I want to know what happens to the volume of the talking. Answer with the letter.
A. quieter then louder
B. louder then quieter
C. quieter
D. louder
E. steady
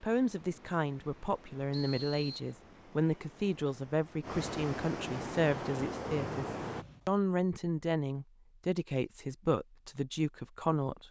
E.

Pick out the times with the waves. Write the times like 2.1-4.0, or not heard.
0.0-6.8.